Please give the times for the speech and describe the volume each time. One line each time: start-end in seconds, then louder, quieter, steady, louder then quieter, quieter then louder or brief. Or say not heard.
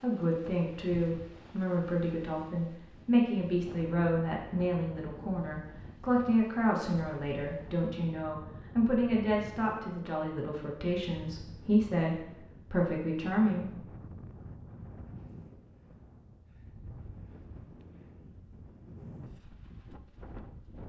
0.0-13.8 steady.